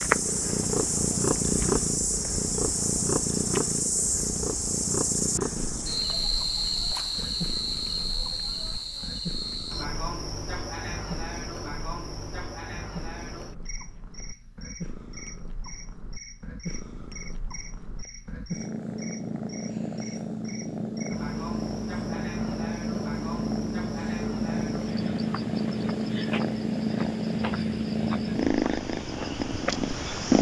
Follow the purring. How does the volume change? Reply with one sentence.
The volume of the purring goes down, then up.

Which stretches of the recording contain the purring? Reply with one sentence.
The purring can be heard from 0.0 to 30.3 s.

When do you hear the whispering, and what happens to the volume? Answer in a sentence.
The whispering can't be heard in this clip.